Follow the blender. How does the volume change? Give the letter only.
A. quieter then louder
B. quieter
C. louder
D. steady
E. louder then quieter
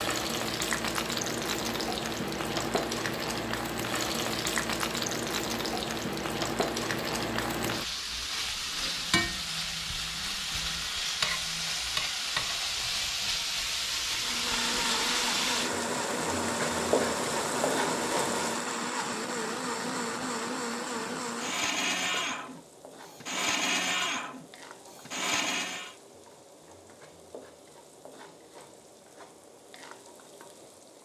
D.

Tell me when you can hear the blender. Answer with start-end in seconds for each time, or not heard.
14.1-25.9.